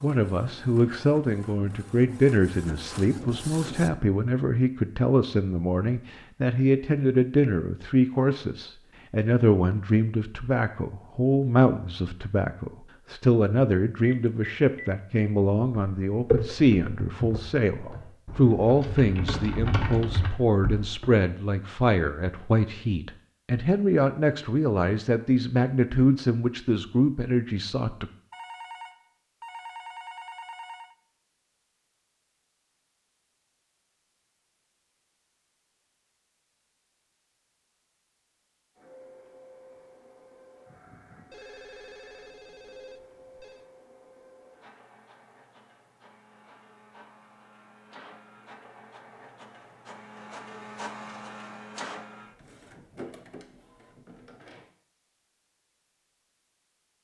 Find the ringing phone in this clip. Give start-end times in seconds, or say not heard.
14.0-14.9, 28.3-30.9, 41.3-43.6.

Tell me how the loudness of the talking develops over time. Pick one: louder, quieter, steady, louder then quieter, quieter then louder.
steady.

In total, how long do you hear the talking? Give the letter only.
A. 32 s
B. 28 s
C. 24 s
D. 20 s
B.